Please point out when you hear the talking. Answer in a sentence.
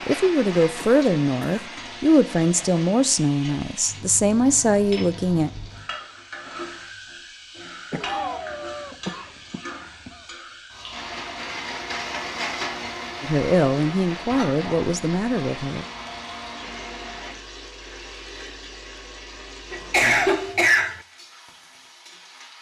You can hear the talking from 0.1 to 5.5 s and from 13.2 to 15.8 s.